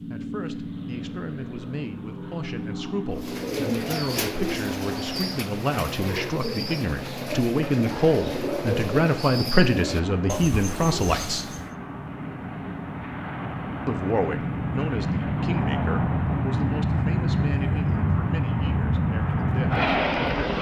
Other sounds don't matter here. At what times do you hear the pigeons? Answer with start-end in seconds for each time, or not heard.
3.1-11.8.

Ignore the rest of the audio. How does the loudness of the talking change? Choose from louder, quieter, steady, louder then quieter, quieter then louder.
louder then quieter.